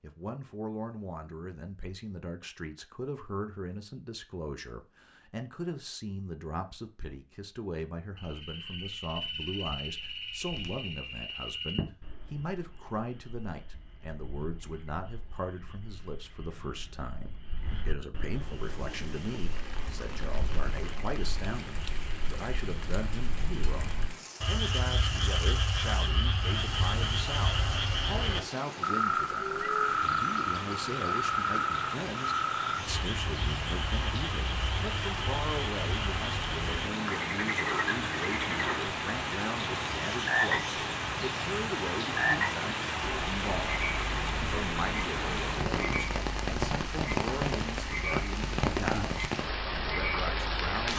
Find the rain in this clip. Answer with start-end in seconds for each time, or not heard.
18.4-50.9.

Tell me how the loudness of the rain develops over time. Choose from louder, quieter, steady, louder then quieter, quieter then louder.
louder.